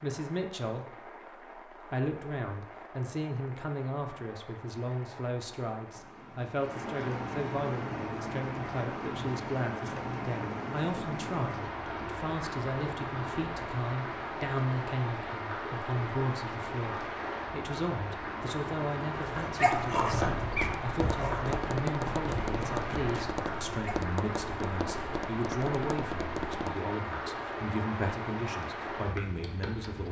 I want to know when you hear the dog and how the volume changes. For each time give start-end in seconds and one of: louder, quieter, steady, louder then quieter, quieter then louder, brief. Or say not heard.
19.1-23.9 quieter.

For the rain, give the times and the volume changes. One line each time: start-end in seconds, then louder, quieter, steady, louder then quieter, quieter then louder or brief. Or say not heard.
0.0-30.0 louder.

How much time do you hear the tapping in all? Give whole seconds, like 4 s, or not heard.
7 s.